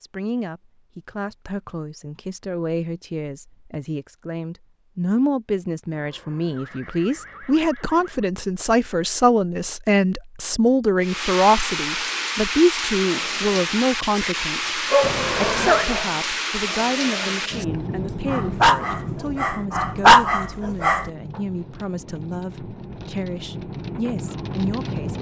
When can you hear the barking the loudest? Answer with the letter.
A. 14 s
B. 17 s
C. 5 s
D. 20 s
D.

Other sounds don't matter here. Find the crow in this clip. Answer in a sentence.
You can't hear the crow here.